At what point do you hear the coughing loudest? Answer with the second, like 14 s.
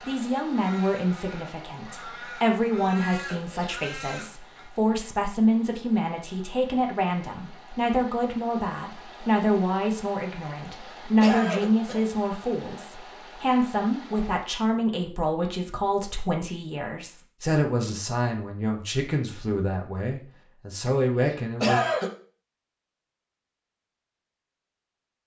22 s.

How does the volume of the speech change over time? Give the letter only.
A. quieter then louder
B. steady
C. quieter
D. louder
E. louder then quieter
B.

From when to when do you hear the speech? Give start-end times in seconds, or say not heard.
0.1-21.8.